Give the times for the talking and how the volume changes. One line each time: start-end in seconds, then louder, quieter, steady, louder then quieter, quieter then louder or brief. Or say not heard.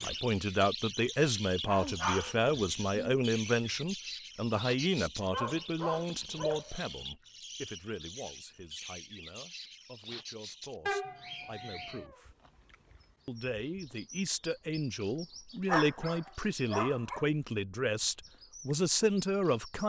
0.0-12.3 quieter
13.2-19.8 louder.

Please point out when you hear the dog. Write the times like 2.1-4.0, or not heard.
1.6-3.1, 5.2-7.0, 10.8-12.2, 15.7-17.2.